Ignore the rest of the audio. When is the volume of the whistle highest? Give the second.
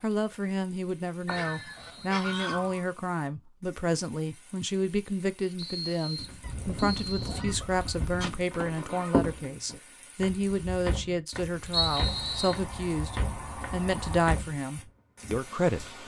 12 s.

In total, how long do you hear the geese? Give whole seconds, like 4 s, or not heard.
6 s.